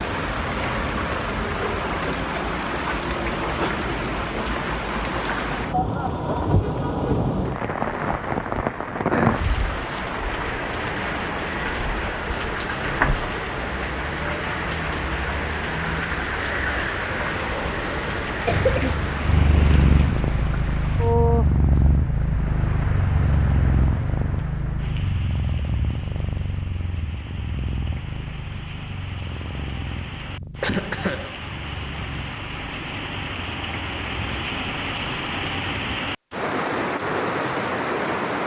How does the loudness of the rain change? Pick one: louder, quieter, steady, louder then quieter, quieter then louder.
quieter then louder.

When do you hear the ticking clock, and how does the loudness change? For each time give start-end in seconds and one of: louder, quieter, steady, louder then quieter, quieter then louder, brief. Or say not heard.
not heard.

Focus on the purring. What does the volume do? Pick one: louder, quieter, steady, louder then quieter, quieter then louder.
quieter.